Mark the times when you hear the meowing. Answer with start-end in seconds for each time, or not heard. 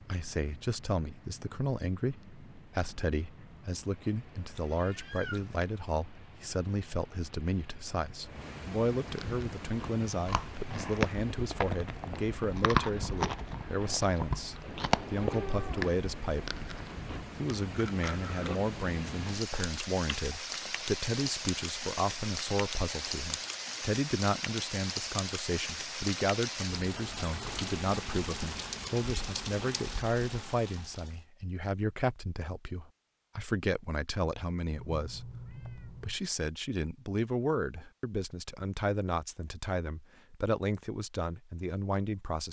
4.5-5.7, 14.6-15.9, 34.8-36.2.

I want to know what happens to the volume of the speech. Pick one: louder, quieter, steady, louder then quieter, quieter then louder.
steady.